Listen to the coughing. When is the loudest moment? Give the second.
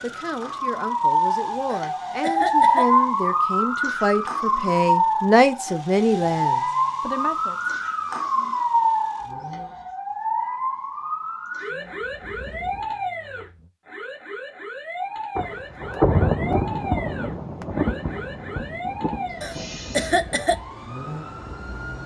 20 s.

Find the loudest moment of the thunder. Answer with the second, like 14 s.
16 s.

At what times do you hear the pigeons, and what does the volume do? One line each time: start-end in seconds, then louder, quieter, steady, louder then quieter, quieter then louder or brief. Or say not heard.
not heard.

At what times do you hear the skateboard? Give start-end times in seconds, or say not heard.
not heard.